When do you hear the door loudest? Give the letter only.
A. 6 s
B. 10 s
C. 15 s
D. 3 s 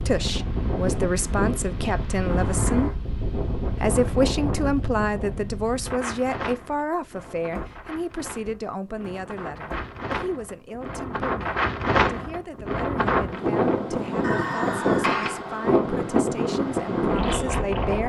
C.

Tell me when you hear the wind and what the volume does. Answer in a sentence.
The wind can be heard from 0.0 to 18.0 s, getting quieter then louder.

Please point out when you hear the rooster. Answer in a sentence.
The rooster can be heard from 14.2 to 15.4 s.